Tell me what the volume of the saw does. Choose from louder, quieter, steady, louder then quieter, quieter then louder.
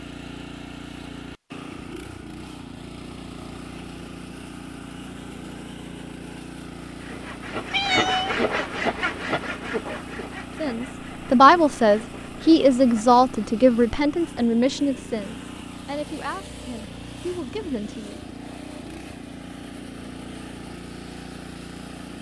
quieter.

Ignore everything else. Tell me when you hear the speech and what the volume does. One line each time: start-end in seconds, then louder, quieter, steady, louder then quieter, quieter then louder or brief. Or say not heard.
10.6-18.2 quieter.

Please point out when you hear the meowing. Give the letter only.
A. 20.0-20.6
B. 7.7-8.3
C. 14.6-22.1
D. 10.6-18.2
B.